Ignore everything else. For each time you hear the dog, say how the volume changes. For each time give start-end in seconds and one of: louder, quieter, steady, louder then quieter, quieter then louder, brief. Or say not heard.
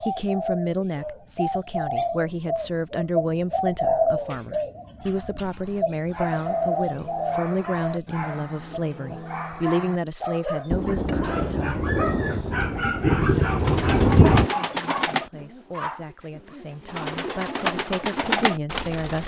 5.5-15.1 louder
15.7-16.6 brief.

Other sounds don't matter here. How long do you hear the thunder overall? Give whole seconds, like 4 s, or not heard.
4 s.